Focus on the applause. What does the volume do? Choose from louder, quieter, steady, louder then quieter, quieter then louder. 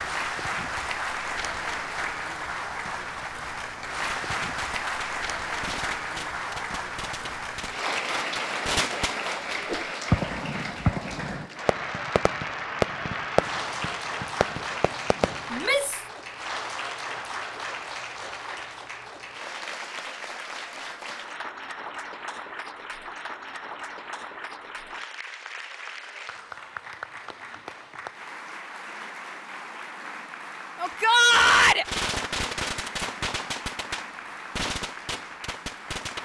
quieter.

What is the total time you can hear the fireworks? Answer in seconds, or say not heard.
16 s.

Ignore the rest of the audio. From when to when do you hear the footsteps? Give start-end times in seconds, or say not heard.
not heard.